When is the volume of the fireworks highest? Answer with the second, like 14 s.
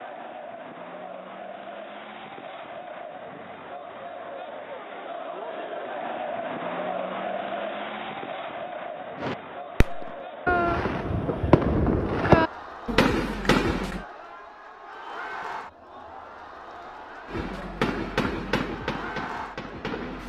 12 s.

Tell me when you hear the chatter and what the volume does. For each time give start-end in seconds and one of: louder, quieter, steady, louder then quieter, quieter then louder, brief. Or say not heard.
0.0-20.2 louder then quieter.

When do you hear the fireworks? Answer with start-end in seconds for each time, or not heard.
9.2-14.1, 17.2-20.2.